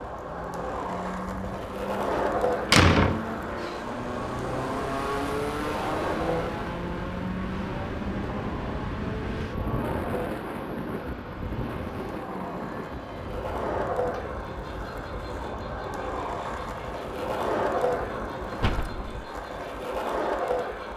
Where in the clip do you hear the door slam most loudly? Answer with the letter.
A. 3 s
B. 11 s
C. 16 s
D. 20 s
A.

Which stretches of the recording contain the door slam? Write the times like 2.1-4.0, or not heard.
2.1-3.7, 18.6-19.3.